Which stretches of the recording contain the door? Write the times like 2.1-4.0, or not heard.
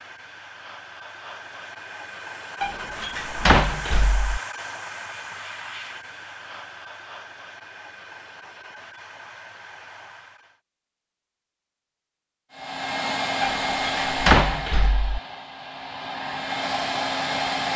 2.6-4.4, 13.4-15.2.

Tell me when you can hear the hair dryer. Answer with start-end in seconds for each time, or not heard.
0.0-10.6, 12.5-17.7.